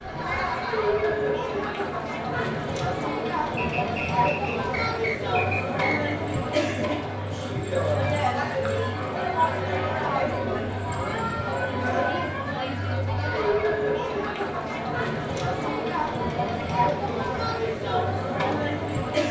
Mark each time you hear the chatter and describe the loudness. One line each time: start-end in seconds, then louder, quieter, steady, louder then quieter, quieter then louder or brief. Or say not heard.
0.0-19.2 steady.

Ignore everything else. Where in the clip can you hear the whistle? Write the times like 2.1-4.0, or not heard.
3.5-6.2.